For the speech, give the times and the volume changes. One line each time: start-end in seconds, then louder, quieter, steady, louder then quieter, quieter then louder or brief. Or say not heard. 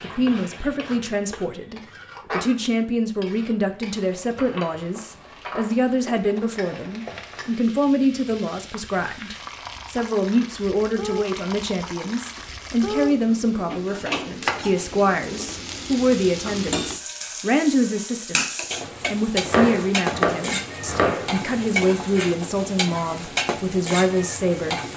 0.0-24.8 steady.